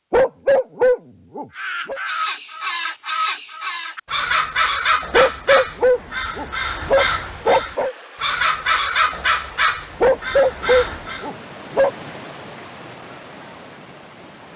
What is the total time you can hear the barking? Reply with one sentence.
The barking can be heard for 7 seconds in total.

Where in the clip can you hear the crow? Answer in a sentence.
The crow can be heard from 1.6 to 11.3 s.